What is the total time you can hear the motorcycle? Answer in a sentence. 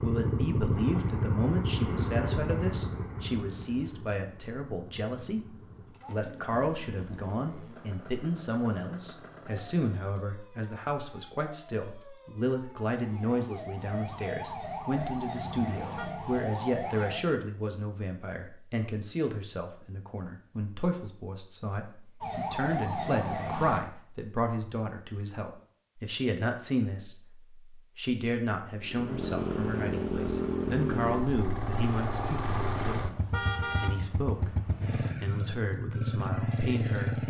You can hear the motorcycle for 18 seconds altogether.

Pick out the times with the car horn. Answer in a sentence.
You can hear the car horn from 6.5 to 7.3 s, from 14.9 to 16.1 s and from 32.4 to 33.9 s.